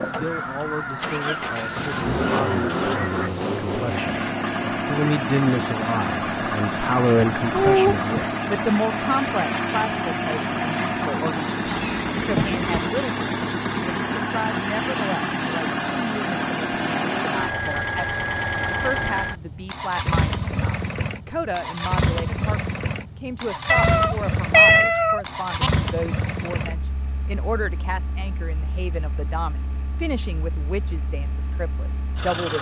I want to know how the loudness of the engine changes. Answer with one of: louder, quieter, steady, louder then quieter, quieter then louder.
quieter.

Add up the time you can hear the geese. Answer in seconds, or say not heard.
3 s.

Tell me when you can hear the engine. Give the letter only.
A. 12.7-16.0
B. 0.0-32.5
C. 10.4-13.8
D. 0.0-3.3
B.